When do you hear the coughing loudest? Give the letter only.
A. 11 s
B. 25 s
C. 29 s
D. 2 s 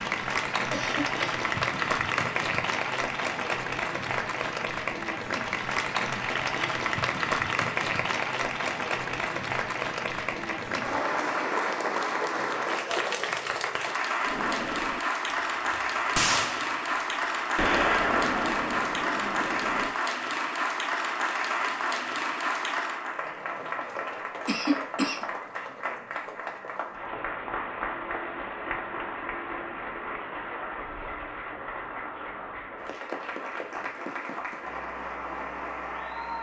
B.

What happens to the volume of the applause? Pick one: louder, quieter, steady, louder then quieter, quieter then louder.
quieter.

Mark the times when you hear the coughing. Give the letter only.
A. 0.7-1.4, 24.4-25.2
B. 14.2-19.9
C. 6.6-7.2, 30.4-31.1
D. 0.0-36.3
A.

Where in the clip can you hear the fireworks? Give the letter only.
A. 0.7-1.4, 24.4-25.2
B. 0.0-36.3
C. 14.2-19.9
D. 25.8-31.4
C.